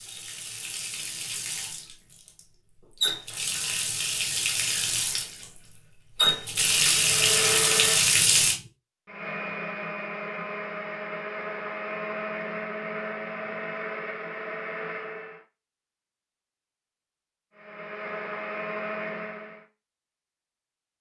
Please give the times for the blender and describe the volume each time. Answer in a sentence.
The blender can be heard from 6.8 to 15.4 s, at a steady volume; and briefly from 17.6 to 19.6 s.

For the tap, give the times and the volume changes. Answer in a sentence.
The tap can be heard from 0.0 to 8.6 s, getting louder.